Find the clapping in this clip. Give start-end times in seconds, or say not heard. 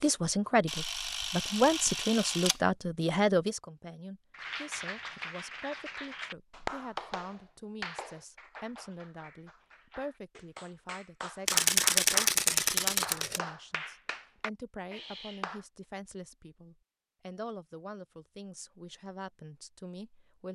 4.3-15.7.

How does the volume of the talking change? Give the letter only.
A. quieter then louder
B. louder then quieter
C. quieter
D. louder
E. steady
C.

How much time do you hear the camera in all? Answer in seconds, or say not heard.
4 s.